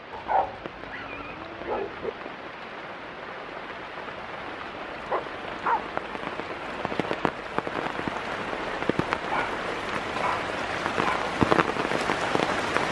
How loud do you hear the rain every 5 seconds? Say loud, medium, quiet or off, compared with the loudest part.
quiet, medium, loud.